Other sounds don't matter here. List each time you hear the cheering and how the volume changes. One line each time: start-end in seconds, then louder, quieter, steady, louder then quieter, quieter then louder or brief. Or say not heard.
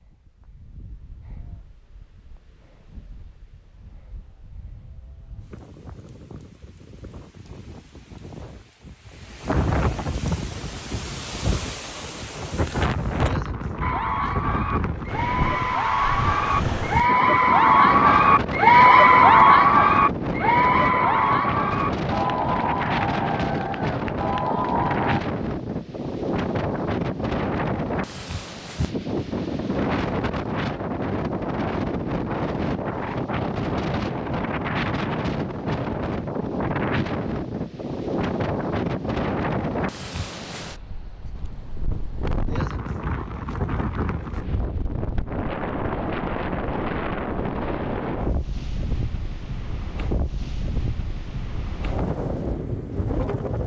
13.8-25.2 louder then quieter.